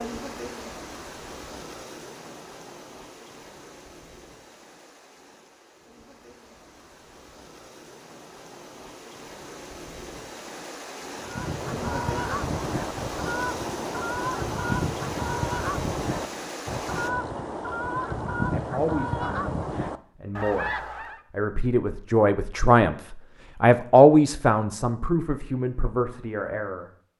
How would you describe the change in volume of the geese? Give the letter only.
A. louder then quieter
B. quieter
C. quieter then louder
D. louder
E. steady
E.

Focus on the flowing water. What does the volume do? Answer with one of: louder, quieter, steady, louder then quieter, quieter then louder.
quieter then louder.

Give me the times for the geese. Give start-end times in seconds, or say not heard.
11.2-21.2.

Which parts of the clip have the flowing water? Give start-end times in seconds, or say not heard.
0.0-17.1.